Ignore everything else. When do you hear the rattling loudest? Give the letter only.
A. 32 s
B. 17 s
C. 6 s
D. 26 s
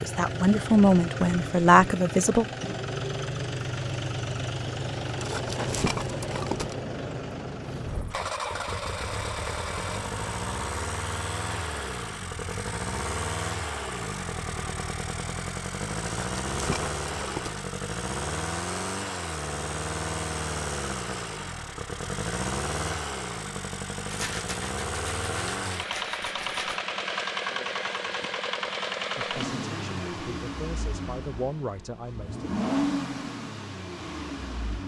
C.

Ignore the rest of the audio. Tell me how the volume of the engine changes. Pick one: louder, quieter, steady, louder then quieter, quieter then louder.
steady.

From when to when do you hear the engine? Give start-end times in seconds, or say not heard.
0.0-34.8.